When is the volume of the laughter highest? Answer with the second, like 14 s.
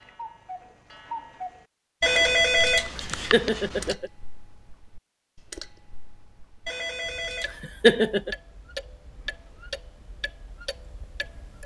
8 s.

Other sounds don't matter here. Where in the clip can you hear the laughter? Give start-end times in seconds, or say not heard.
3.1-4.1, 7.6-8.3.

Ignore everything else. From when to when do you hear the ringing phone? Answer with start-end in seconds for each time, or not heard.
2.0-4.0, 6.7-7.6.